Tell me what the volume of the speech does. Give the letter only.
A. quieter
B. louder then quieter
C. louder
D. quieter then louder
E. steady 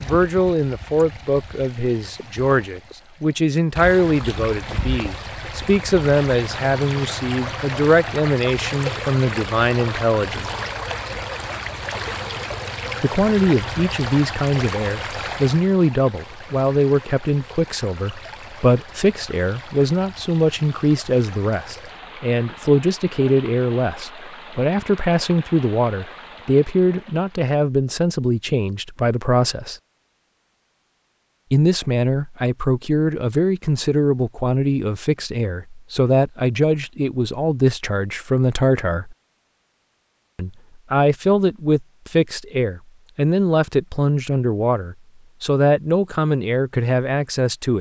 E.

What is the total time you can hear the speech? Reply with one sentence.
The speech can be heard for 42 seconds in total.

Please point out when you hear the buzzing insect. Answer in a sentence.
The buzzing insect can't be heard in this clip.